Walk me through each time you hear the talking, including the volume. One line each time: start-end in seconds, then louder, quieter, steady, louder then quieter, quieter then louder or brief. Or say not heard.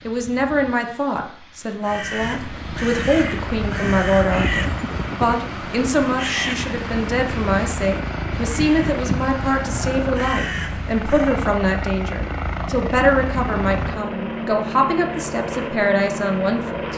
0.1-16.9 steady.